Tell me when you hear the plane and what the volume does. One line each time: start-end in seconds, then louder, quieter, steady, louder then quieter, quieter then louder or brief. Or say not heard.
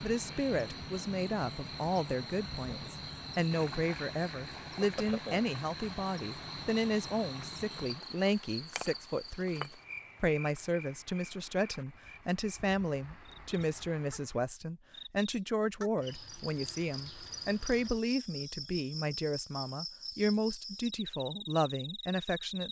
not heard.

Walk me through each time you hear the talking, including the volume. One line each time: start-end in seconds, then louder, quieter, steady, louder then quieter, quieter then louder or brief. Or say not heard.
0.0-22.6 steady.